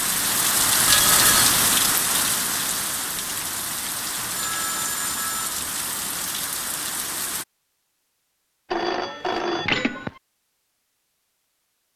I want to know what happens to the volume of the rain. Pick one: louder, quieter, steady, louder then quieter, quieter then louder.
quieter.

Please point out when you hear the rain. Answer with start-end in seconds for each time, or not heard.
0.0-7.5.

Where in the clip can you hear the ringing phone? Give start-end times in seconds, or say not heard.
0.8-1.5, 4.2-5.5, 8.7-10.1.